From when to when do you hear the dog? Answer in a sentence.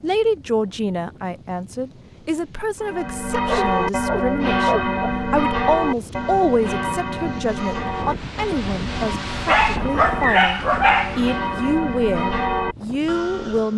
The dog can be heard from 3.5 to 4.8 s and from 9.4 to 11.3 s.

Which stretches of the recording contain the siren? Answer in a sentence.
The siren can't be heard in this clip.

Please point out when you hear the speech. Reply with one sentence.
You can hear the speech from 0.0 to 13.7 s.